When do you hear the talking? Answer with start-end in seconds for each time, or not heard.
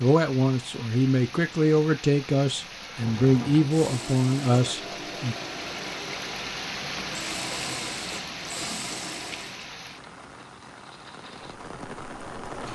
0.0-5.3.